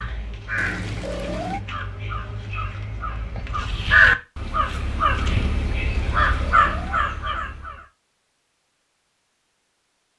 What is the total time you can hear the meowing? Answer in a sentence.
You can hear the meowing for 2 seconds altogether.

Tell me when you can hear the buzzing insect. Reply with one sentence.
The buzzing insect can't be heard in this clip.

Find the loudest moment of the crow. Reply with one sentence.
The loudest moment of the crow is at 4 seconds.